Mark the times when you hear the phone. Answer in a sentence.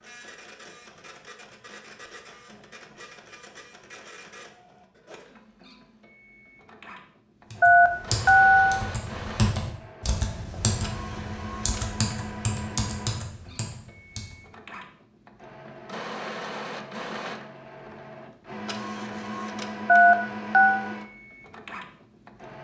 The phone can be heard from 7.6 to 8.8 s and from 19.9 to 20.9 s.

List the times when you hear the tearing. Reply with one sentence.
You can't hear the tearing here.